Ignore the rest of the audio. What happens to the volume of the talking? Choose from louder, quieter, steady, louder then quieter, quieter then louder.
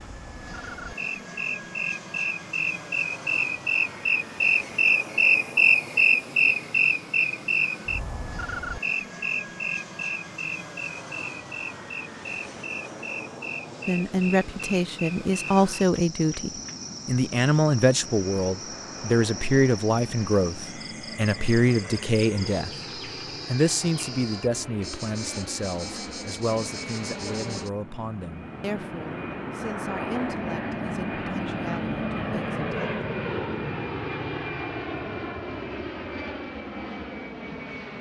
quieter.